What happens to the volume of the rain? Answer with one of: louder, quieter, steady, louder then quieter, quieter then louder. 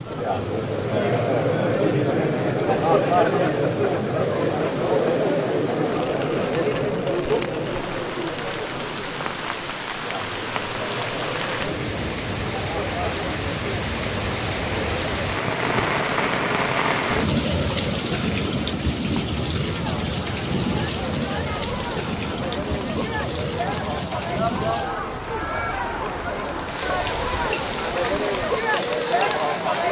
louder then quieter.